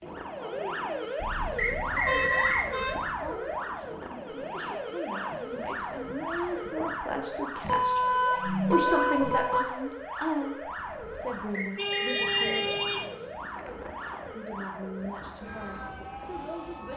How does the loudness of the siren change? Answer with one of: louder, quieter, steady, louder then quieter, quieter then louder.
quieter.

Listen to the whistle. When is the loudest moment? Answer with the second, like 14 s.
2 s.